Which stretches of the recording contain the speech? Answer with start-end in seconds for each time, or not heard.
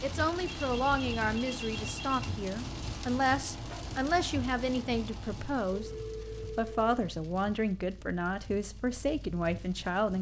0.0-5.9, 6.5-10.1.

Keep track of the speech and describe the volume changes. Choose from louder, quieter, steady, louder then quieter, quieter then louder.
steady.